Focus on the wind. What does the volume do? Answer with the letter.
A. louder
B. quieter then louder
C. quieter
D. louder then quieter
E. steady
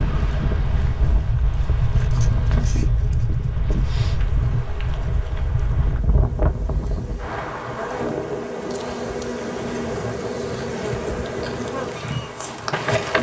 C.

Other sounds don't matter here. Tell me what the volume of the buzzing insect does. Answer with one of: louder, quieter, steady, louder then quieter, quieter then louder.
louder.